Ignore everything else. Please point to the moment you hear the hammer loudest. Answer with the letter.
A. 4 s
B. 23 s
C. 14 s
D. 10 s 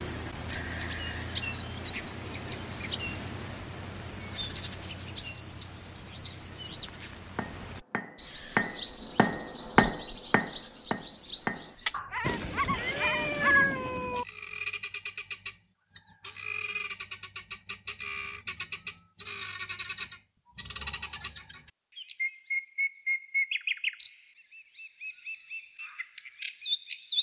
D.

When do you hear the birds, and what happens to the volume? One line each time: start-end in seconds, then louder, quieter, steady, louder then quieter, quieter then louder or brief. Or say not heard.
0.0-27.1 steady.